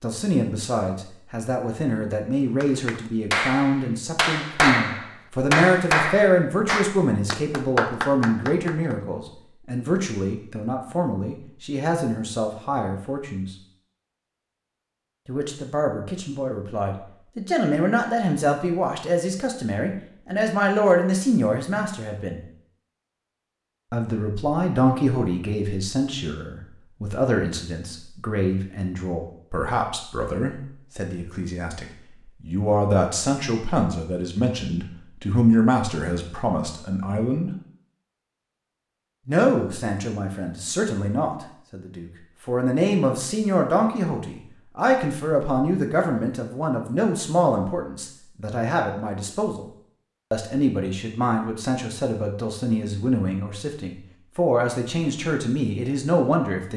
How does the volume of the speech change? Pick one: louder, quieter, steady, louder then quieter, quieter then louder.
steady.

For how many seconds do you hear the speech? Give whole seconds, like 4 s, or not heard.
51 s.